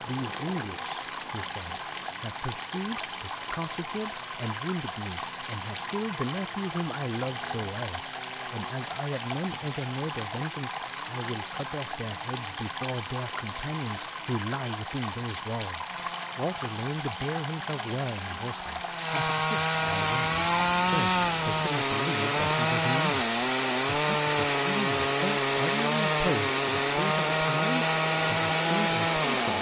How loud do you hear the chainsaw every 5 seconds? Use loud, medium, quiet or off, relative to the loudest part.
quiet, quiet, quiet, medium, loud, loud.